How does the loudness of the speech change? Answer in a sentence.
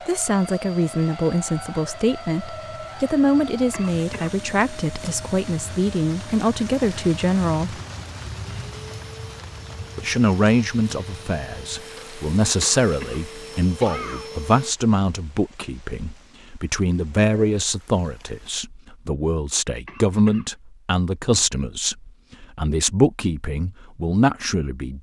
The loudness of the speech stays about the same.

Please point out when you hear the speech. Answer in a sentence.
The speech can be heard from 0.1 to 7.8 s and from 9.9 to 24.9 s.